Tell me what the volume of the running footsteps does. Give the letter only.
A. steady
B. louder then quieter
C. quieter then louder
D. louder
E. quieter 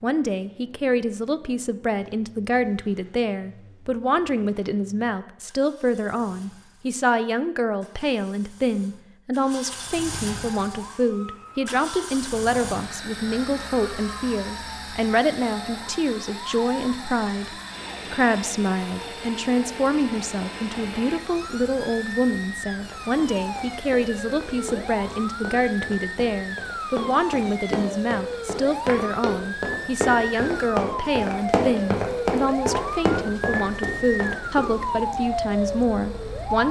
D.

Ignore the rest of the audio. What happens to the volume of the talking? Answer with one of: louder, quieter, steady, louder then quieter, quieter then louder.
steady.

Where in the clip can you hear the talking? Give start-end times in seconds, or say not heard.
0.0-36.6.